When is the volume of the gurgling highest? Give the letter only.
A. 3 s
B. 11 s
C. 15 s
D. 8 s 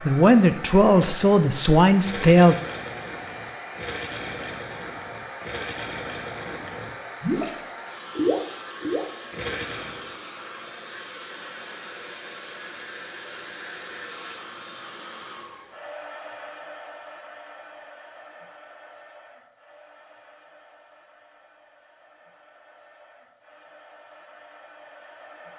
D.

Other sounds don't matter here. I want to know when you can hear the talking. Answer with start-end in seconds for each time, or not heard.
0.0-2.5.